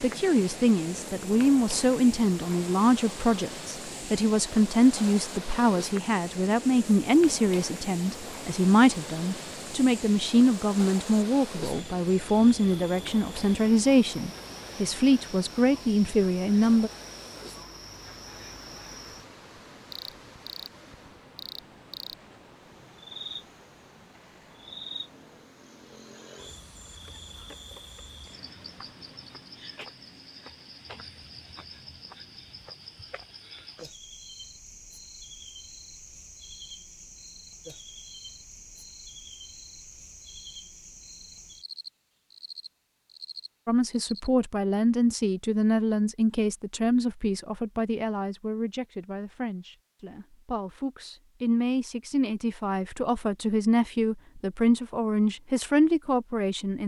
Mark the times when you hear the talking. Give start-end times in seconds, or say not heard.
0.0-16.9, 43.6-56.8.